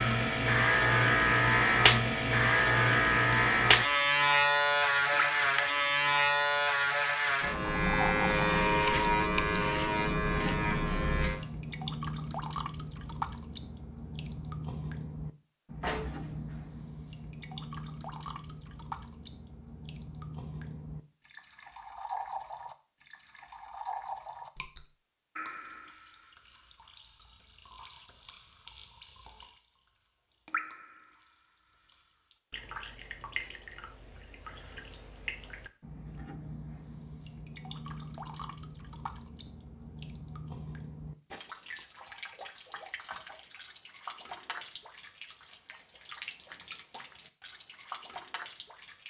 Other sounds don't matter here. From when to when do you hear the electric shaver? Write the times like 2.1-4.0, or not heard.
0.0-11.4.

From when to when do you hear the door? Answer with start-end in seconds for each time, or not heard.
15.8-16.6.